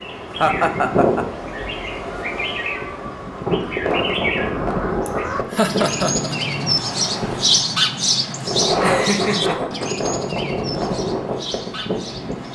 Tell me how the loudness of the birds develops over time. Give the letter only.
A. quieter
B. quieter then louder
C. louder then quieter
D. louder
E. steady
C.